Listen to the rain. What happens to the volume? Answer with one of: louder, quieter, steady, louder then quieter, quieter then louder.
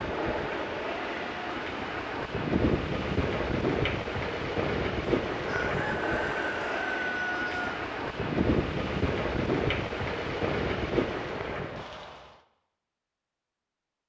steady.